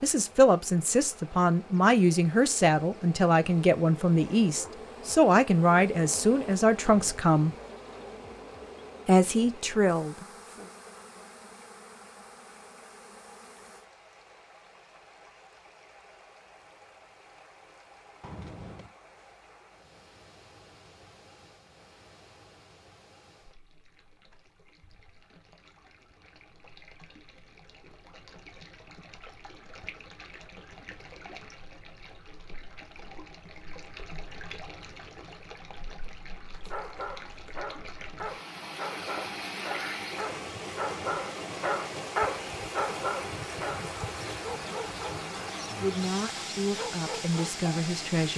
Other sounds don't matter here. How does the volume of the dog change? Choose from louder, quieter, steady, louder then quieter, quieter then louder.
louder then quieter.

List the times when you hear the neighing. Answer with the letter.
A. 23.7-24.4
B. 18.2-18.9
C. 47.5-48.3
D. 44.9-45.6
B.